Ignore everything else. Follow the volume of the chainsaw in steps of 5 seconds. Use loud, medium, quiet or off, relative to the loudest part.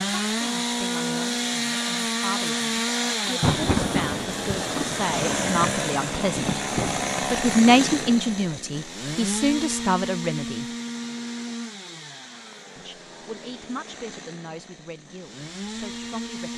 loud, loud, medium, medium.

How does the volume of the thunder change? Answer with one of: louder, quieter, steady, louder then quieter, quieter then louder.
quieter.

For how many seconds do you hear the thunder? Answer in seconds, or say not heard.
5 s.